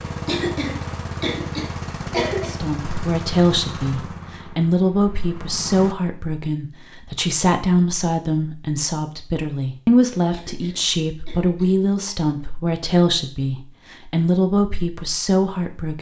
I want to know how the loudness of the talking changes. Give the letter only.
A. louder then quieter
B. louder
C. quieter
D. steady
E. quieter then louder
D.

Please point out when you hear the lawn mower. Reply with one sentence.
You can hear the lawn mower from 0.0 to 6.0 s.